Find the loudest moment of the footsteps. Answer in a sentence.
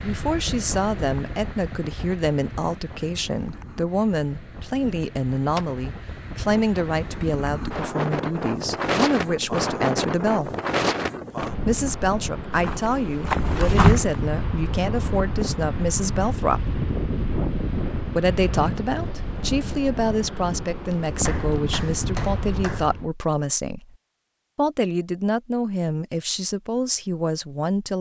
The loudest moment of the footsteps is at 14 seconds.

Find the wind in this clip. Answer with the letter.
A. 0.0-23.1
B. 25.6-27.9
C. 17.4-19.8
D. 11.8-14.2
A.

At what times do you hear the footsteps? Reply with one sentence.
You can hear the footsteps from 11.8 to 14.2 s.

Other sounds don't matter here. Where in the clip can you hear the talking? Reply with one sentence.
The talking can be heard from 0.0 to 10.5 s, from 11.7 to 16.8 s, from 18.1 to 23.9 s and from 24.6 to 27.9 s.